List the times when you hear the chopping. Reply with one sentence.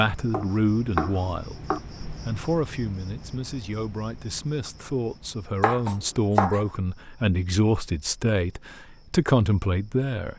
You can hear the chopping from 0.3 to 1.8 s and from 5.6 to 6.7 s.